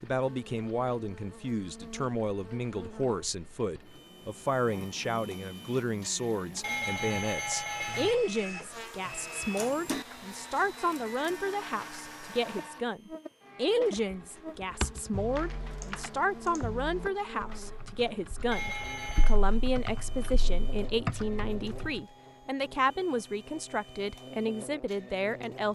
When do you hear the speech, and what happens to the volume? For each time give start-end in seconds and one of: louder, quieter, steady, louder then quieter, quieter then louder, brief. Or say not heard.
0.0-25.7 steady.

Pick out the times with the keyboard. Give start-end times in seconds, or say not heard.
13.9-21.9.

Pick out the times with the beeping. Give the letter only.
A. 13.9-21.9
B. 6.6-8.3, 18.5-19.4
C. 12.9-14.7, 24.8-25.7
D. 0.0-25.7
B.